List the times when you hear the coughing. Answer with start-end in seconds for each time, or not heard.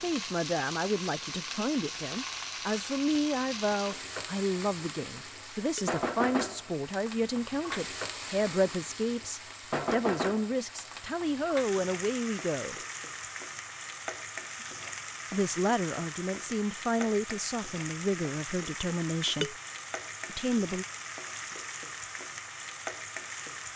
not heard.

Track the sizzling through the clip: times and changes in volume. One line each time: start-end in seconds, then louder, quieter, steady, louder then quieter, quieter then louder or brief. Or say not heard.
0.0-23.7 steady.